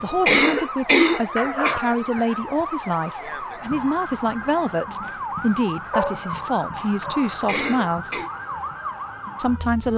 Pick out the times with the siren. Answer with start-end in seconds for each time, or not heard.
0.0-9.9.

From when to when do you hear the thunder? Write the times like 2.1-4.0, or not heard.
not heard.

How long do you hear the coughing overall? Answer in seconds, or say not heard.
2 s.